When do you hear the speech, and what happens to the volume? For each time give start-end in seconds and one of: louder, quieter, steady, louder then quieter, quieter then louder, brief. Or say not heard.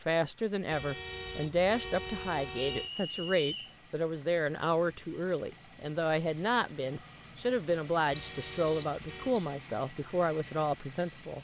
0.0-11.3 steady.